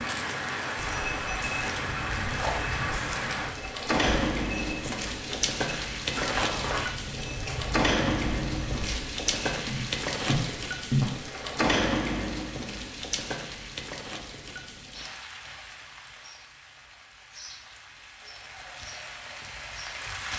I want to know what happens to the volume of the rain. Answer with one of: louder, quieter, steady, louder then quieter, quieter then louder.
quieter.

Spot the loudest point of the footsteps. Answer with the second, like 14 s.
11 s.